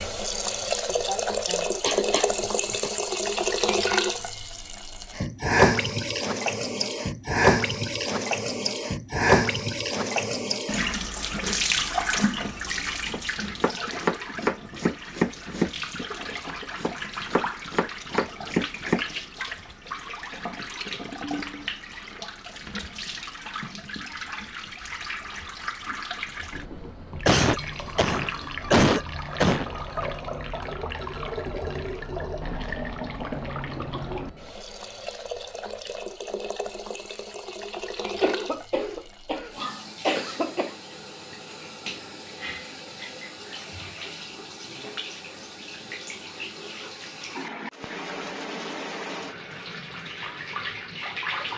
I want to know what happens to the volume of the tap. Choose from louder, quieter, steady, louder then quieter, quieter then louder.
quieter.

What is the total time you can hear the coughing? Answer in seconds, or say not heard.
7 s.